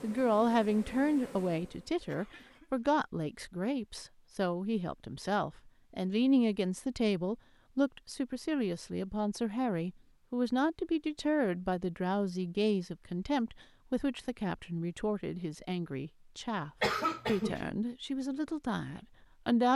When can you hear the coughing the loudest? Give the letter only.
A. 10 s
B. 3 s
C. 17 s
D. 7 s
C.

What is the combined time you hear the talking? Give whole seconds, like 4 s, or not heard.
20 s.